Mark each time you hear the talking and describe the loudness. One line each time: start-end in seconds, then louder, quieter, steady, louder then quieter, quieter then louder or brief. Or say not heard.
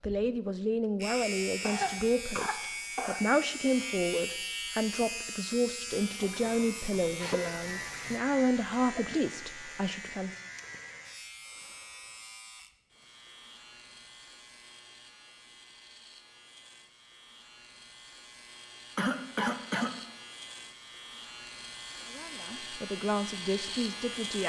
0.0-10.4 steady
21.9-24.4 brief.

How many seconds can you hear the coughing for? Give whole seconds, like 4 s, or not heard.
3 s.